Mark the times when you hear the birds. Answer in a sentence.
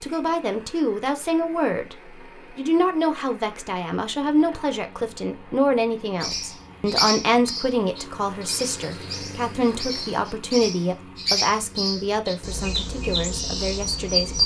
The birds can be heard from 6.2 to 14.4 s.